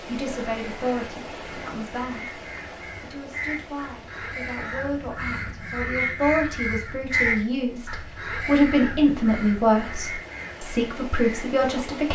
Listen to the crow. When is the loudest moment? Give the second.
7 s.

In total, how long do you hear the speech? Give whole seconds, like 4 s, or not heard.
12 s.